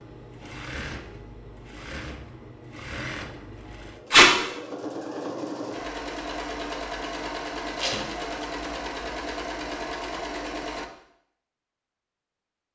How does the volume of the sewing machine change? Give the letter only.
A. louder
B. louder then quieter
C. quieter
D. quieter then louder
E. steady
A.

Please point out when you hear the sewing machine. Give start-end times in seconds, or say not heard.
0.0-10.9.